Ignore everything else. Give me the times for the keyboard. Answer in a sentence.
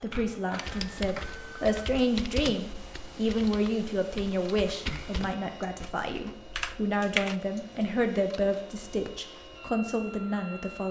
You can hear the keyboard from 0.6 to 8.0 s.